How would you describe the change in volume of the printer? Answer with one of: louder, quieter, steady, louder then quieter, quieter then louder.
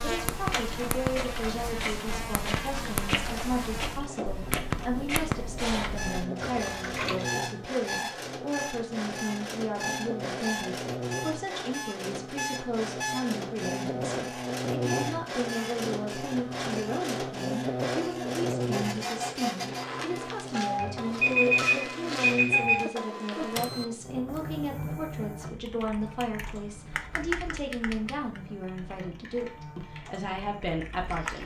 quieter.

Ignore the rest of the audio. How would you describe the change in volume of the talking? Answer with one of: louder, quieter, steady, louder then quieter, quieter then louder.
steady.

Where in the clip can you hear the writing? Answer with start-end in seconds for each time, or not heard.
not heard.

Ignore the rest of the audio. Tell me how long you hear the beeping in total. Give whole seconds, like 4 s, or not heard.
2 s.